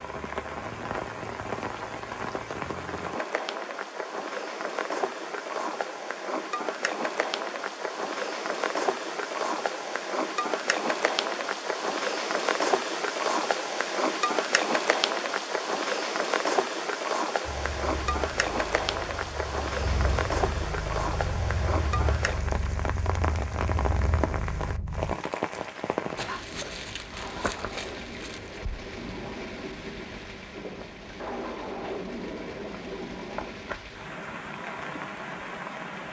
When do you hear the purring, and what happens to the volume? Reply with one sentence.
You can hear the purring from 17.4 to 25.1 s, getting louder.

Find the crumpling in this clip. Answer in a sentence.
You can hear the crumpling from 26.1 to 28.6 s.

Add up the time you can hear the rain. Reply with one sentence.
The rain can be heard for 36 seconds in total.